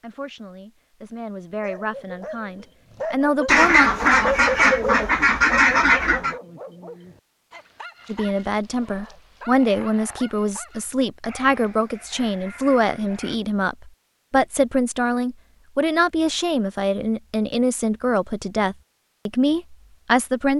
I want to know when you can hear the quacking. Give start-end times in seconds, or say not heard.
3.5-6.3.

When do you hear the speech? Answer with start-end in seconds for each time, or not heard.
0.0-3.9, 8.1-20.5.